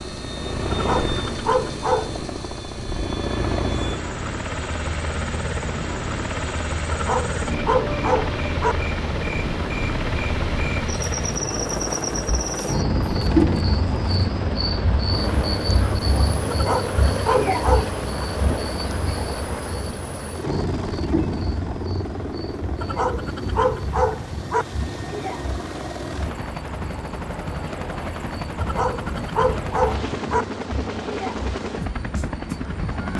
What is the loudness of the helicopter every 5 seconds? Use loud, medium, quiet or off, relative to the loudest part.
loud, loud, loud, loud, medium, loud, loud.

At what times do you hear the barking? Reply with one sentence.
You can hear the barking from 0.7 to 2.2 s, from 6.9 to 8.8 s, from 16.5 to 18.0 s, from 22.8 to 24.6 s and from 28.6 to 30.4 s.